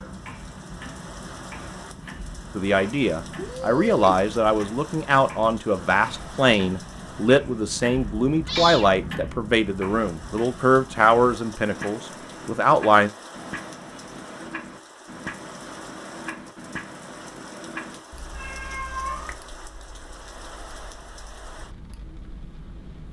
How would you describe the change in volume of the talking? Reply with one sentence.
The loudness of the talking stays about the same.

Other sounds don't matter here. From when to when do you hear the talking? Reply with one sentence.
You can hear the talking from 2.5 to 13.1 s.